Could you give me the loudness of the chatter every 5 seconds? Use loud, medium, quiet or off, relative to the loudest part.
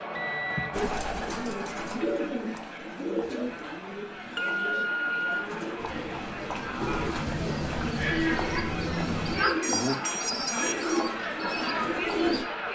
medium, loud, loud.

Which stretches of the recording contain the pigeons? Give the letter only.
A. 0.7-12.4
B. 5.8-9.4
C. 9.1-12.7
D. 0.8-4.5
A.